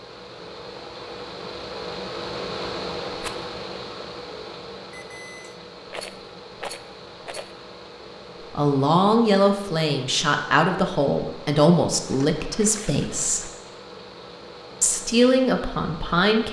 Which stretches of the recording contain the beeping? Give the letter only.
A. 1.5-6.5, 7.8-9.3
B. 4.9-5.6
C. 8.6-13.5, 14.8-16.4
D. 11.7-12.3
B.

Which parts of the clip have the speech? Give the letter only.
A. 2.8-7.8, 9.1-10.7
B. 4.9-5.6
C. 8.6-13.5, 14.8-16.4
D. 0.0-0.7
C.